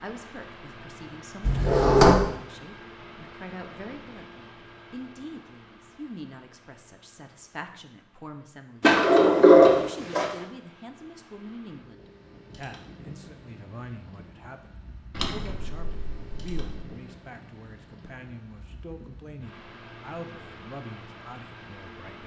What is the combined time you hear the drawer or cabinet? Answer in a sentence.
The drawer or cabinet can be heard for 4 seconds in total.